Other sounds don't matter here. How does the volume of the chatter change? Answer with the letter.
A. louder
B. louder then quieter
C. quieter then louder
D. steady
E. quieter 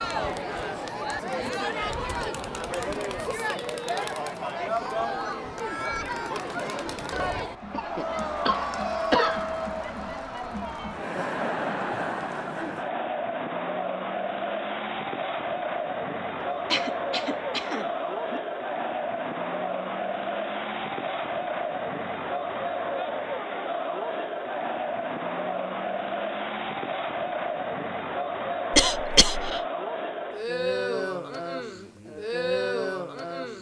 D.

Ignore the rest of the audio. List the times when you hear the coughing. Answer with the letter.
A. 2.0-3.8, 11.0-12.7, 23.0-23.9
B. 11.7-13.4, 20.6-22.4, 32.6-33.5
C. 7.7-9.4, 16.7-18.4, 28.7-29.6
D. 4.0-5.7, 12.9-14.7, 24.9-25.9
C.